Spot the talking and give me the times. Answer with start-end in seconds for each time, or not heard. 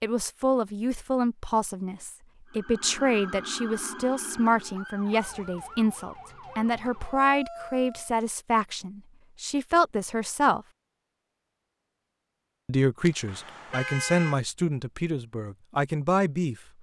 0.0-10.7, 12.7-16.6.